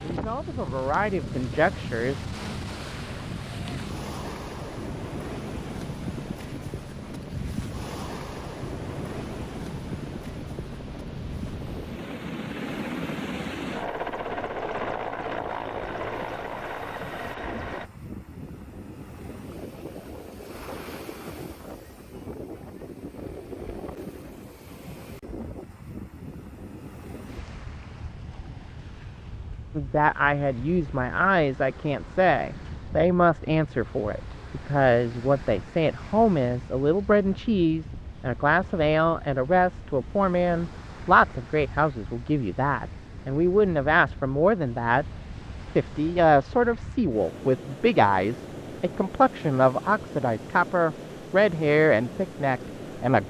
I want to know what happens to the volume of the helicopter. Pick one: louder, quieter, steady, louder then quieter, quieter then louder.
louder.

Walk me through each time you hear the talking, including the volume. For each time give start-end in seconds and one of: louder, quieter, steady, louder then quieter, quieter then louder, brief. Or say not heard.
0.1-2.1 brief
29.8-45.0 steady
45.7-53.2 steady.